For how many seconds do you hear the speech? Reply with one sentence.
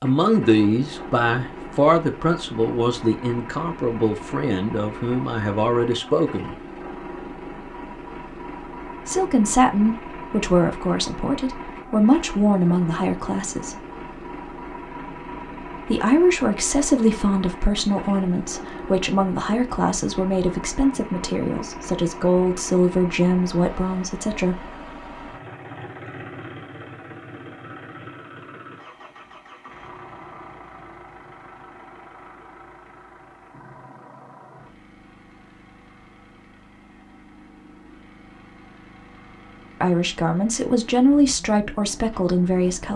You can hear the speech for 23 seconds altogether.